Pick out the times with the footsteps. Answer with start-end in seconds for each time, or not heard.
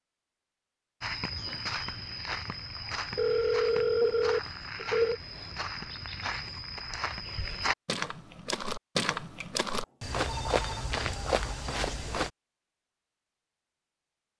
1.0-12.3.